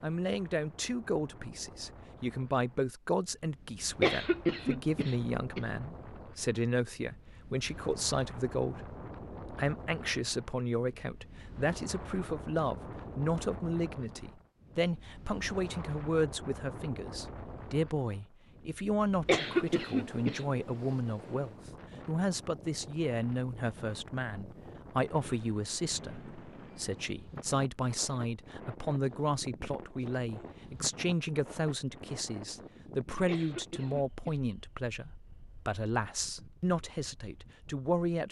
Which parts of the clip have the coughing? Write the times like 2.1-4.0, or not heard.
4.0-5.7, 19.2-20.4, 33.2-34.4.